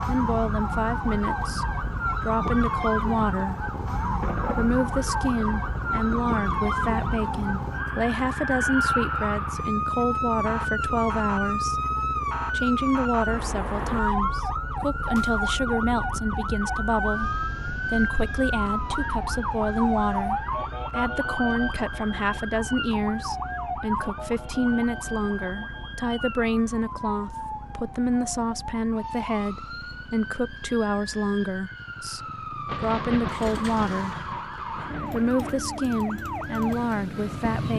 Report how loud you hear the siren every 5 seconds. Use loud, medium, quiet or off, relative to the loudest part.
loud, loud, loud, loud, loud, medium, medium, medium.